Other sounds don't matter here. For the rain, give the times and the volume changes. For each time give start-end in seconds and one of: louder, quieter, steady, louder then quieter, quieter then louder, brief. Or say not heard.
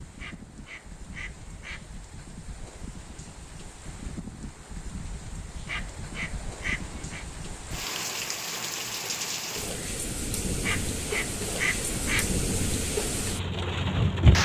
0.0-14.3 louder.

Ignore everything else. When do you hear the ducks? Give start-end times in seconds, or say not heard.
0.1-1.9, 5.7-7.2, 10.6-12.3.